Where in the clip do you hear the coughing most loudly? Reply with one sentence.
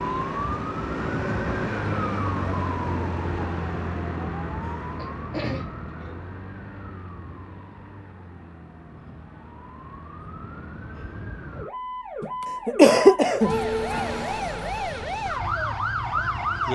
The volume of the coughing peaks at 13 seconds.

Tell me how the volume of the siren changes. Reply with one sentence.
The volume of the siren goes down, then up.